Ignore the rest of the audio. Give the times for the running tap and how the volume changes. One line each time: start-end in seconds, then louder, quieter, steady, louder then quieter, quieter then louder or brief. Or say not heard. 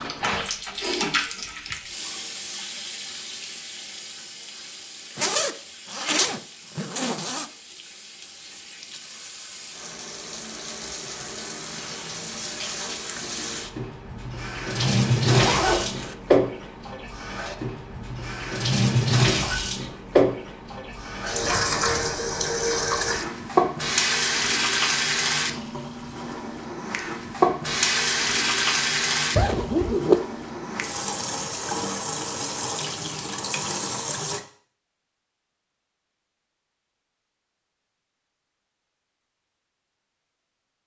0.0-34.4 louder.